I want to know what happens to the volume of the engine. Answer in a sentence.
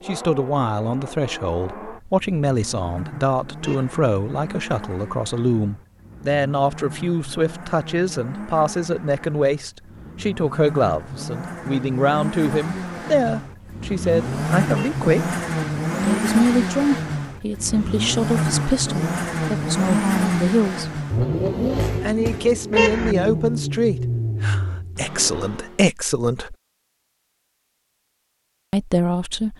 The loudness of the engine goes up.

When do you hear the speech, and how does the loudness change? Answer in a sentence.
You can hear the speech from 0.1 to 15.3 s, at a steady volume; from 16.0 to 21.0 s, getting quieter then louder; from 22.0 to 26.6 s, getting quieter then louder; and briefly from 28.7 to 29.5 s.